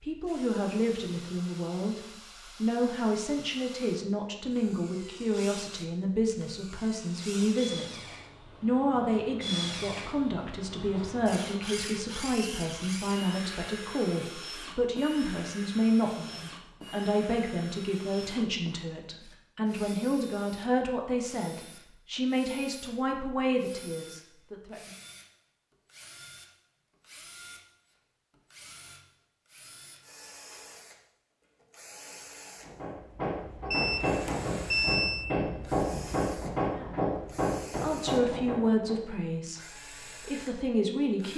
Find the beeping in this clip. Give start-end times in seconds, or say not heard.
33.7-35.2.